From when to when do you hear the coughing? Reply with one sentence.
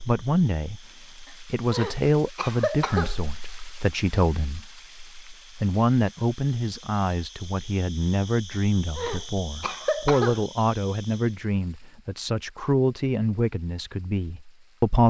You can hear the coughing from 1.2 to 3.1 s and from 8.5 to 10.4 s.